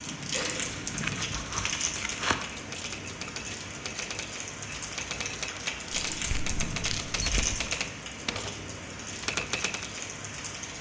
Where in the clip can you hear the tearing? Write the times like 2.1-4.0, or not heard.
0.3-2.4, 6.2-7.6.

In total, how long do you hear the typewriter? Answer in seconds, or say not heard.
9 s.